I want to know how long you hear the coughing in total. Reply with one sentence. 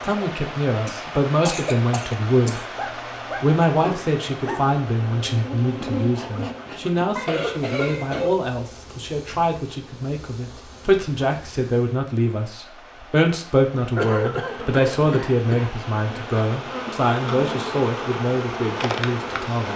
The coughing can be heard for 5 seconds in total.